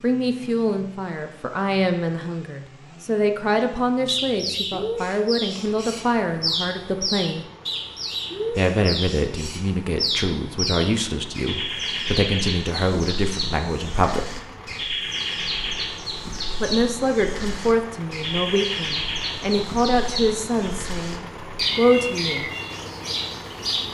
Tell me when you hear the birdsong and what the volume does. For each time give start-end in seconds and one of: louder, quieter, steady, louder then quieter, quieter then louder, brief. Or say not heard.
3.5-23.8 steady.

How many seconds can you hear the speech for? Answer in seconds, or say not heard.
19 s.